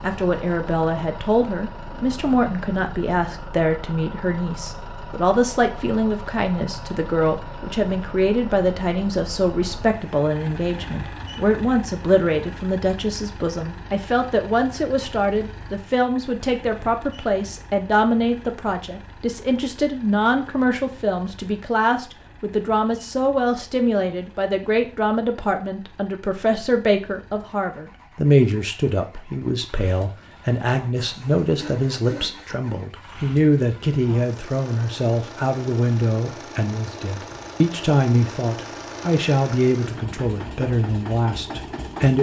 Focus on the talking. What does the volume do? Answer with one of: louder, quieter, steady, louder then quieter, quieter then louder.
steady.